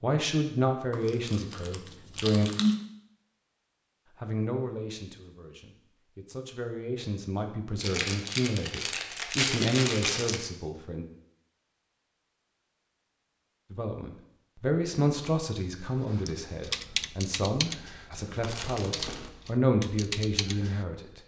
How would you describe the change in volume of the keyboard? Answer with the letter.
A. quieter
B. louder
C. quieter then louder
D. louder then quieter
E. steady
C.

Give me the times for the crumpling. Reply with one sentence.
You can hear the crumpling from 0.9 to 2.8 s, from 7.8 to 10.4 s and from 18.4 to 19.3 s.